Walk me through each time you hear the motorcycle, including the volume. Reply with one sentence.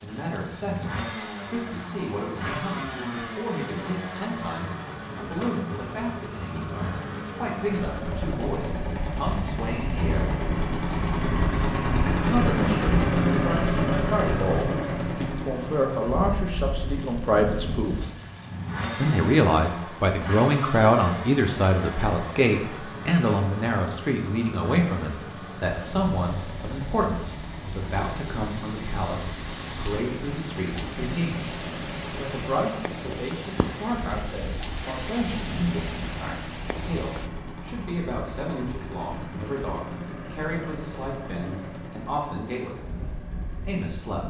The motorcycle can be heard from 0.0 to 44.2 s, getting louder then quieter.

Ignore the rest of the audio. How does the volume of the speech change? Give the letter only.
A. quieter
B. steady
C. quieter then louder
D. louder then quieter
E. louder
D.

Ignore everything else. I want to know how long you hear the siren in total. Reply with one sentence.
The siren can't be heard in this clip.